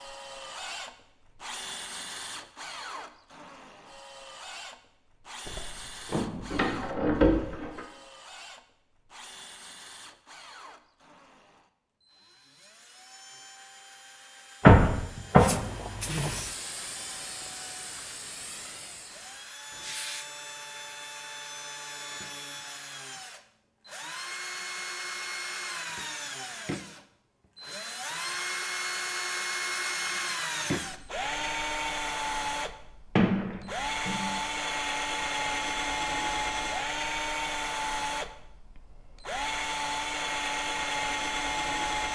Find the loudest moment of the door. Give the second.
15 s.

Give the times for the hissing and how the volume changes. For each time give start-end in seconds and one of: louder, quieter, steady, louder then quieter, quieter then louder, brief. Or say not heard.
15.3-20.3 quieter.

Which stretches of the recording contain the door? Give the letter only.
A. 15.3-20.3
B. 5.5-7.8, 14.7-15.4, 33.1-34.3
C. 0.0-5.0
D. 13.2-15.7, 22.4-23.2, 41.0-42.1
B.